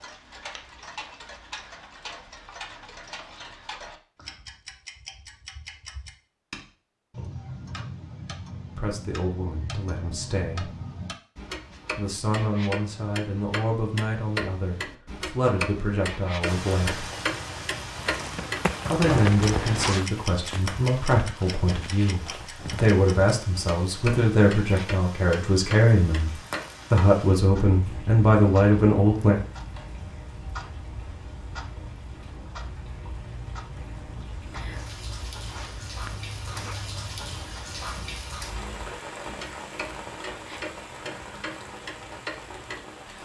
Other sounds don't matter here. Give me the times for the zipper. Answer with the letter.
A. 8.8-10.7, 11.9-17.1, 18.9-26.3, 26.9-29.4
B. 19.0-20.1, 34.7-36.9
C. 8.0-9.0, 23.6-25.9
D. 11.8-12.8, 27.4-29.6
B.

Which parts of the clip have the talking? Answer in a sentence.
You can hear the talking from 8.8 to 10.7 s, from 11.9 to 17.1 s, from 18.9 to 26.3 s and from 26.9 to 29.4 s.